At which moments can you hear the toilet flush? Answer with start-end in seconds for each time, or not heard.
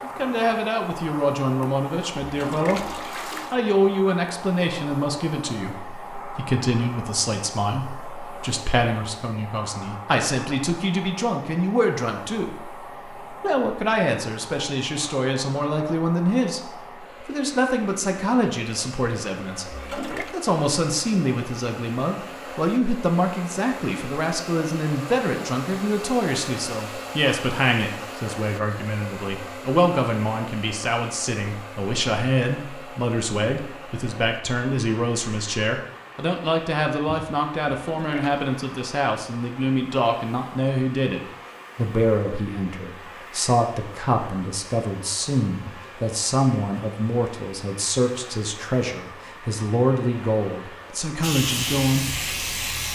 2.2-3.6, 19.6-20.4, 37.9-38.5.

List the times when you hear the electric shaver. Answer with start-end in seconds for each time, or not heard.
51.2-52.9.